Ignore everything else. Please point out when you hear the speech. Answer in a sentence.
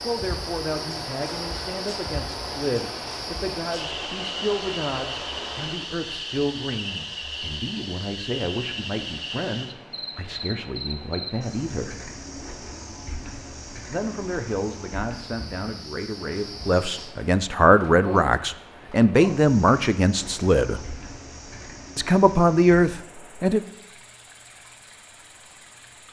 You can hear the speech from 0.0 to 11.9 s, from 13.8 to 20.9 s and from 21.9 to 23.6 s.